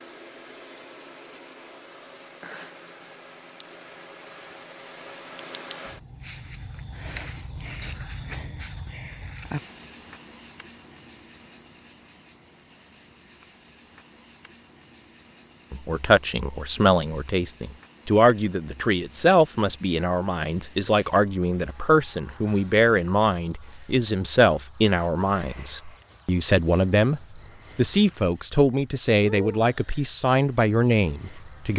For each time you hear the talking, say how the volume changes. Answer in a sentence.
You can hear the talking from 15.7 to 31.7 s, at a steady volume.